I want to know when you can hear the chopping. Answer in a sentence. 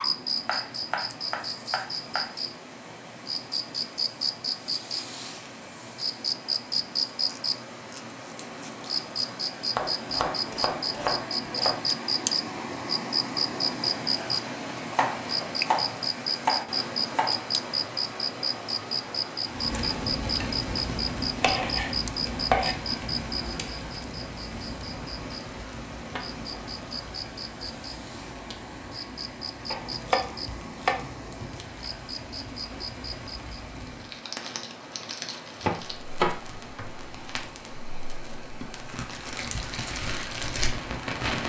You can hear the chopping from 0.5 to 2.3 s, from 9.8 to 11.8 s, from 14.9 to 17.4 s, from 21.4 to 22.8 s, from 29.7 to 31.6 s and from 35.6 to 37.3 s.